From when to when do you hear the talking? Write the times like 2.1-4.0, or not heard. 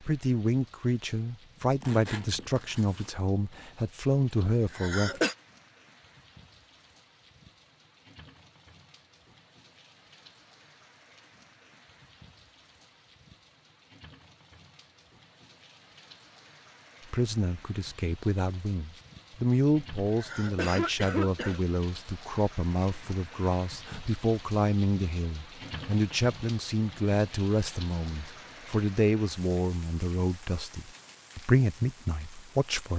0.0-5.2, 17.1-32.9.